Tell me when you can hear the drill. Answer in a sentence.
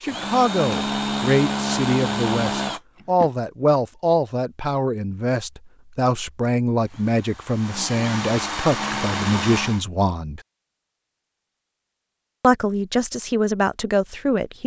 The drill can be heard from 0.0 to 3.3 s and from 6.8 to 9.8 s.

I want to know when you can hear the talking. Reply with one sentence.
You can hear the talking from 0.0 to 10.4 s and from 12.4 to 14.6 s.